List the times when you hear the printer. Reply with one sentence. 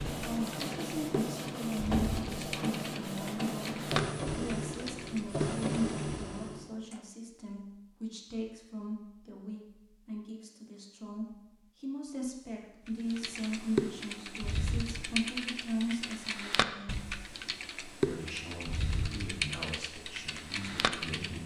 You can hear the printer from 0.0 to 7.0 s.